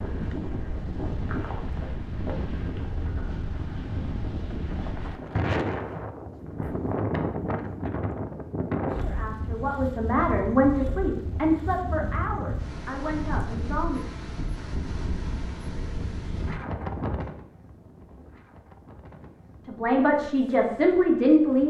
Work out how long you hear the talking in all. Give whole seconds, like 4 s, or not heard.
7 s.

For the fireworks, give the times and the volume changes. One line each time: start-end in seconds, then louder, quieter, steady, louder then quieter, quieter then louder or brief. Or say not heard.
not heard.